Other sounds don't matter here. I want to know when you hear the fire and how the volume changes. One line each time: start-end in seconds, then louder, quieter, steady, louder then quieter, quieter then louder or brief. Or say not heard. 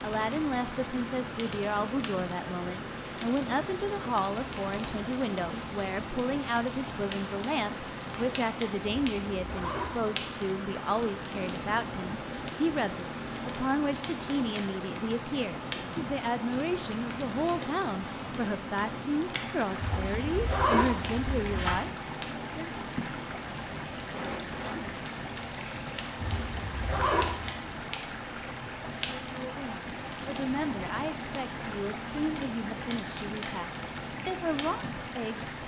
0.0-35.6 steady.